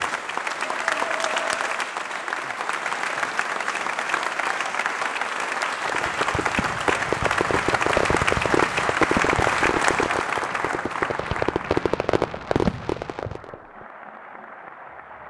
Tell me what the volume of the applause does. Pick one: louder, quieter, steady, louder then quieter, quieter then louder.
quieter.